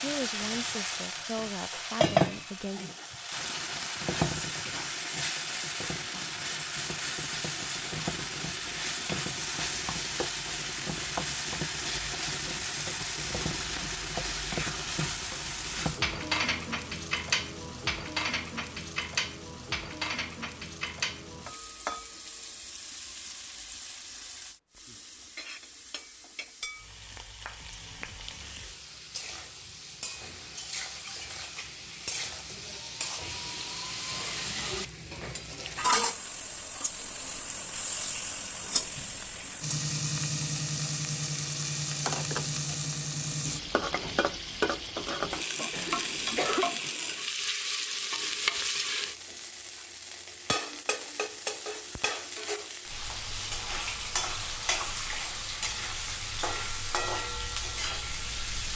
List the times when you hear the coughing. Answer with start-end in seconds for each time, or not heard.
45.7-46.6.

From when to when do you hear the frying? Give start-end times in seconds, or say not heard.
0.0-58.7.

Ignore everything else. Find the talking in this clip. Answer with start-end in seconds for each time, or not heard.
0.0-3.0.